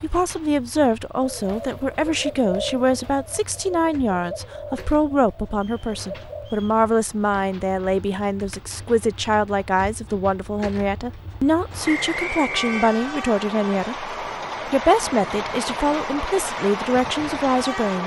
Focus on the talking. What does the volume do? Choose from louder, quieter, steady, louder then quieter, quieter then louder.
steady.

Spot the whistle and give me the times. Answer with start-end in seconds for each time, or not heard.
5.5-6.8, 11.8-12.9.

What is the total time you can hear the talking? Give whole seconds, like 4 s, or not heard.
18 s.